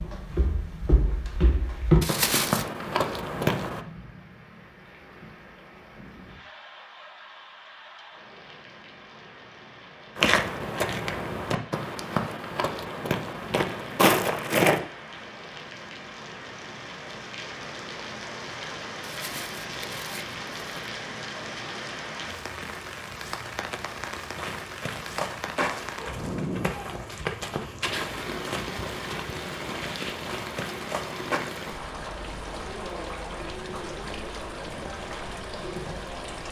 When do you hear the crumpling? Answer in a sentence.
The crumpling can be heard from 2.0 to 2.6 s and from 19.1 to 20.9 s.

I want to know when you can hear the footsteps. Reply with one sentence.
The footsteps can be heard from 0.0 to 3.8 s, from 10.2 to 14.8 s and from 24.4 to 31.4 s.